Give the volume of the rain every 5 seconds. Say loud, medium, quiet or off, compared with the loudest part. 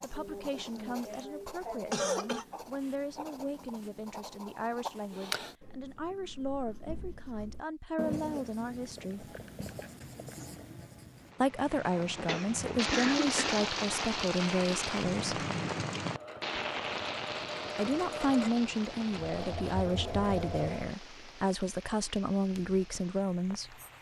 off, off, loud, loud, quiet.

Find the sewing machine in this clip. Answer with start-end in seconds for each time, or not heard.
16.0-20.9.